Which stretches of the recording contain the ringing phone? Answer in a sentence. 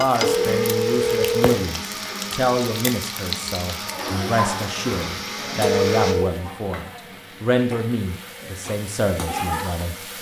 You can hear the ringing phone from 0.1 to 1.6 s and from 5.7 to 6.3 s.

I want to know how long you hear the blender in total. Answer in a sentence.
The blender can be heard for 6 seconds in total.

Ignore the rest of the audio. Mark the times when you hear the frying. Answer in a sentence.
The frying can be heard from 0.0 to 10.1 s.